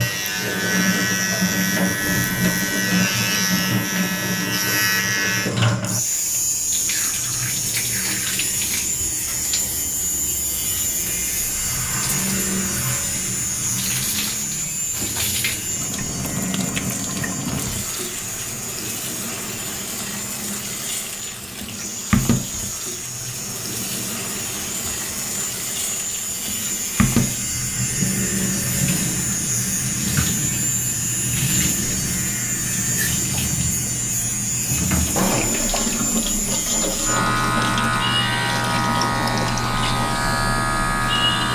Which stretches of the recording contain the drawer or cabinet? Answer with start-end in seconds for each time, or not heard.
35.1-36.0.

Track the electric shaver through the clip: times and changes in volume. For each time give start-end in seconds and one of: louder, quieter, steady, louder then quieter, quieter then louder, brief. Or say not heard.
0.0-41.5 quieter then louder.